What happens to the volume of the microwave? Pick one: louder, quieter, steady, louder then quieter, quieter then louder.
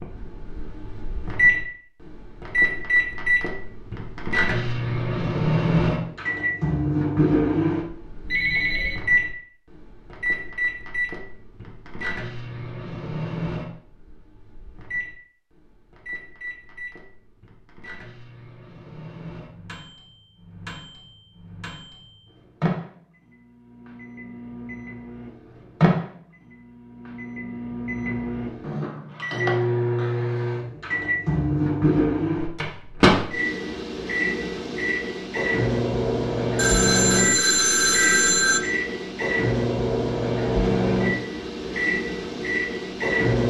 quieter then louder.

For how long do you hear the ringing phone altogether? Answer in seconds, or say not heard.
3 s.